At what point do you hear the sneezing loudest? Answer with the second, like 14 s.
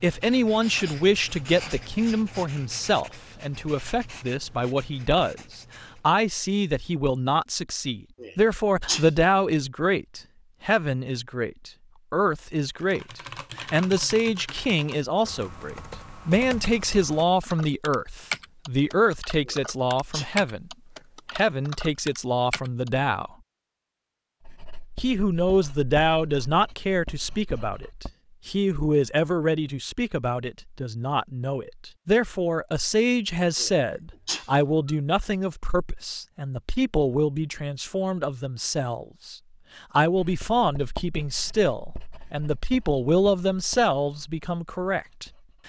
9 s.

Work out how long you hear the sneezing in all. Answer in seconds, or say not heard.
3 s.